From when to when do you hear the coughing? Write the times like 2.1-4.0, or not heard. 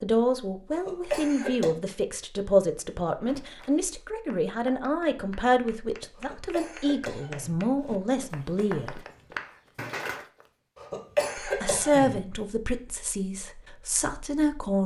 0.7-1.7, 6.2-7.5, 10.8-12.2.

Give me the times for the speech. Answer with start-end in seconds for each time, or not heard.
0.0-9.0, 11.4-14.8.